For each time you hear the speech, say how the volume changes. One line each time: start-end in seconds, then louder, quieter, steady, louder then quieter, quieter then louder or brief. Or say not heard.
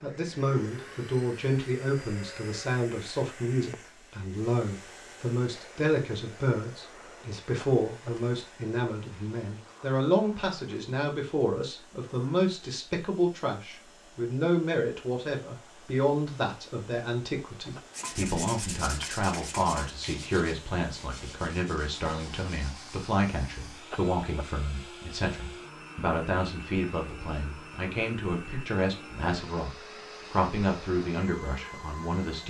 0.0-32.4 steady.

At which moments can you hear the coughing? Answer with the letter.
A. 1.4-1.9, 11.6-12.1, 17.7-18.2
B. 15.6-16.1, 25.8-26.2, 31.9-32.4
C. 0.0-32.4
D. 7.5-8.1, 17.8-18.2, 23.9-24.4
D.